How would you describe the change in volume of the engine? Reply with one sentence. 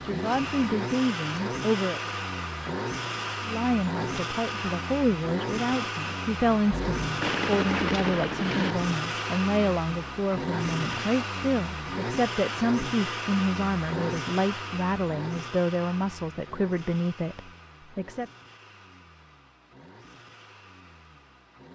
The loudness of the engine goes down.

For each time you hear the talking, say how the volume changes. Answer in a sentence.
You can hear the talking briefly from 0.0 to 2.0 s; and from 3.5 to 18.2 s, at a steady volume.